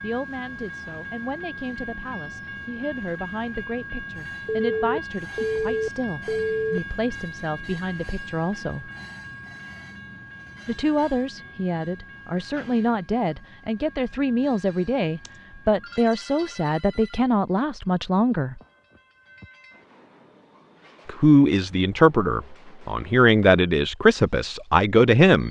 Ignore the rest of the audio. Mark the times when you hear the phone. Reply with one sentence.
The phone can be heard from 4.5 to 6.8 s and from 15.2 to 17.2 s.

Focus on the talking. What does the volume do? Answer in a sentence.
The volume of the talking goes up.